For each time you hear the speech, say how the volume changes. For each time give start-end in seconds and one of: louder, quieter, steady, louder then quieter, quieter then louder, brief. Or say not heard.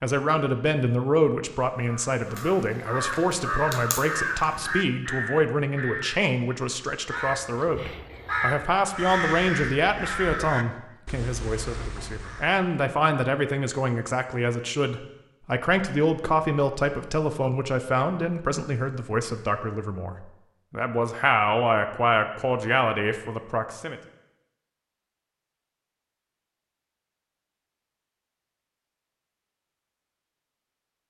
0.0-24.0 steady.